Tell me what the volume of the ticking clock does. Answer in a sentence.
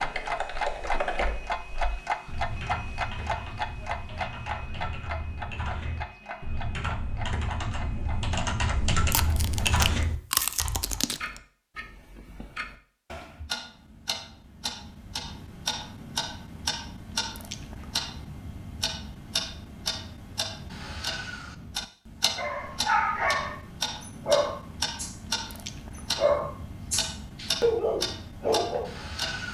The loudness of the ticking clock goes down, then up.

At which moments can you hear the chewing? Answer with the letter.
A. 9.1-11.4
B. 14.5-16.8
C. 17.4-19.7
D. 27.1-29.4
A.